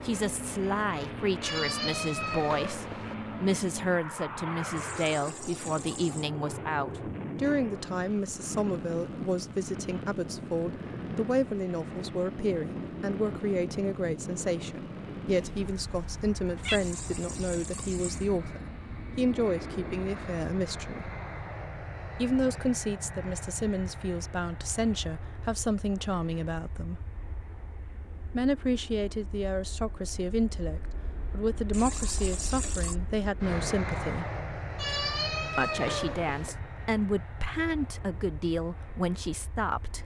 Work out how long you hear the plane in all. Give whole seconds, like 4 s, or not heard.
40 s.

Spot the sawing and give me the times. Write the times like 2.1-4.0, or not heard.
not heard.